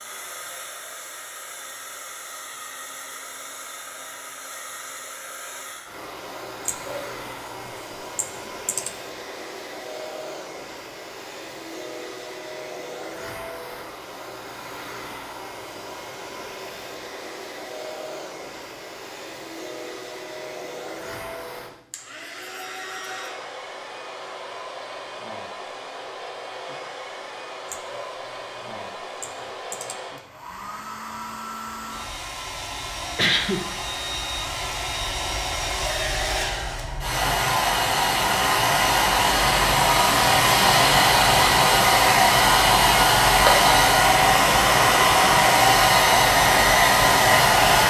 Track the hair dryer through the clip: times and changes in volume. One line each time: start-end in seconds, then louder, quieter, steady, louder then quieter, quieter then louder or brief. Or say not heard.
0.0-47.8 louder.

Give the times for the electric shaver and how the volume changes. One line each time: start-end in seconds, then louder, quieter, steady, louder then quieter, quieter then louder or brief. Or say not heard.
not heard.